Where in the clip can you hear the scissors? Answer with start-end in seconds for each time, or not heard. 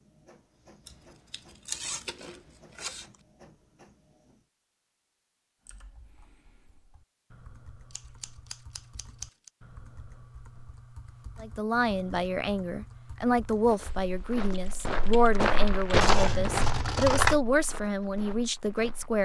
0.8-3.0, 7.9-9.5, 16.0-17.4.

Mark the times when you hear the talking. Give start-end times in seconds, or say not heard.
11.4-19.2.